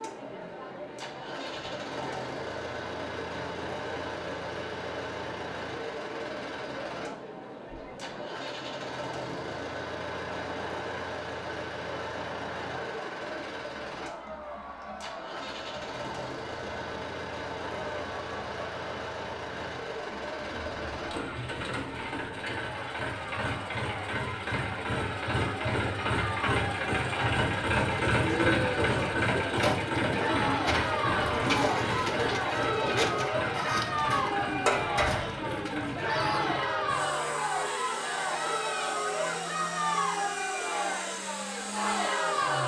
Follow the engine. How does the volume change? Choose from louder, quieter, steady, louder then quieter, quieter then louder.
louder then quieter.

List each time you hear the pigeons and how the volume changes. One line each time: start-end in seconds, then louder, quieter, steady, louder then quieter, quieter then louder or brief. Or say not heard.
27.4-36.6 steady.